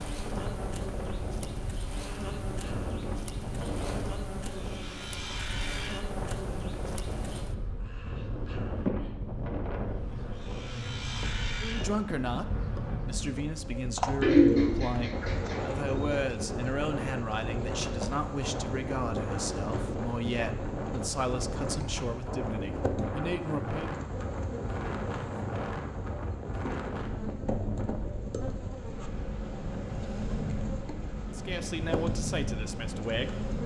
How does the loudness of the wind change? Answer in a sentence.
The volume of the wind stays about the same.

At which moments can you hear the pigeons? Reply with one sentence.
You can hear the pigeons from 14.2 to 16.1 s.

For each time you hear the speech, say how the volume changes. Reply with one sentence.
The speech can be heard from 11.6 to 23.9 s, at a steady volume; and briefly from 31.3 to 33.5 s.